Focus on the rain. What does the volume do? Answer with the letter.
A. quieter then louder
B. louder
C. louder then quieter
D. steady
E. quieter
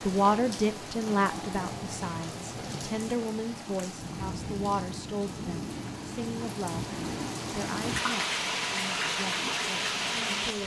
B.